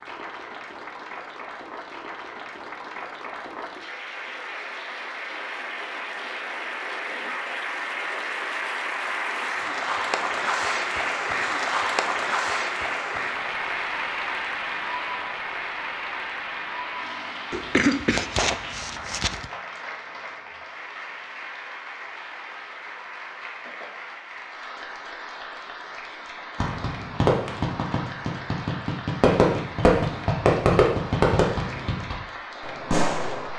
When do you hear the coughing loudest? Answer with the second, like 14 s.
18 s.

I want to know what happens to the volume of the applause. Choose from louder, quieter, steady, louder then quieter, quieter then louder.
louder then quieter.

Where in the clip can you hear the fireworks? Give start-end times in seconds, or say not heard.
26.6-33.5.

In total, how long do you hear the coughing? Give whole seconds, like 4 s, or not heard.
2 s.